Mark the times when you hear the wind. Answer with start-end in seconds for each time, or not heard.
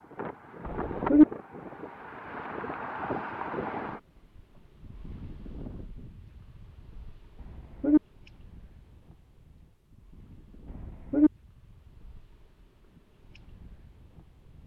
0.0-14.6.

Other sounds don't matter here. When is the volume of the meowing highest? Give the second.
1 s.